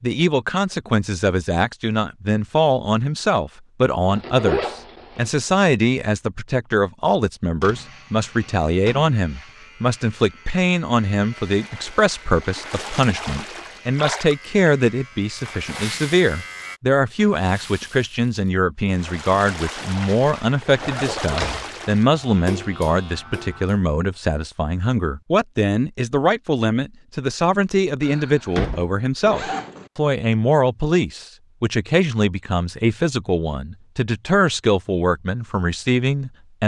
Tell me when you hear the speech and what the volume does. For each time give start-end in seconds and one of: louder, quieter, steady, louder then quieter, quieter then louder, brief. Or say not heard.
0.0-36.6 steady.